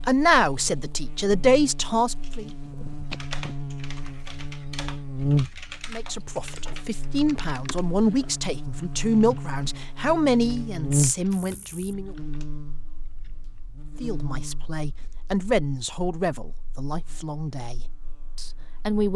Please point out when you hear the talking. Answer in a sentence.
The talking can be heard from 0.1 to 2.5 s, from 5.9 to 12.2 s and from 14.0 to 19.1 s.